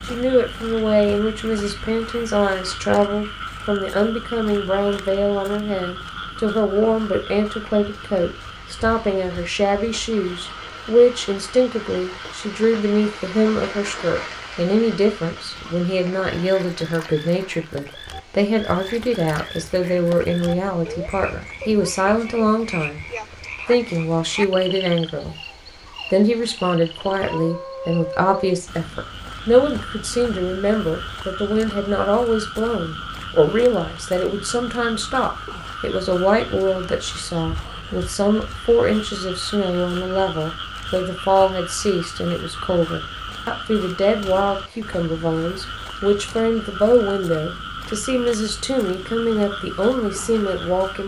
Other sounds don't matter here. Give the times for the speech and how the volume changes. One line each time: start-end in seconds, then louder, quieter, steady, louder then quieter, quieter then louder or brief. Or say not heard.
0.1-23.0 steady
23.6-25.4 brief
26.1-51.0 steady.